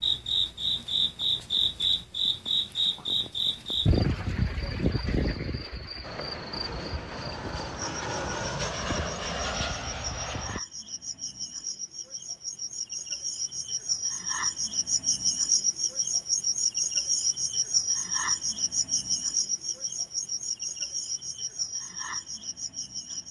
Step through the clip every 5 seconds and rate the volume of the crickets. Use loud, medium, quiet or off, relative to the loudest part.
loud, medium, medium, loud, medium.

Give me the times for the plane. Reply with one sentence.
You can hear the plane from 6.0 to 10.6 s.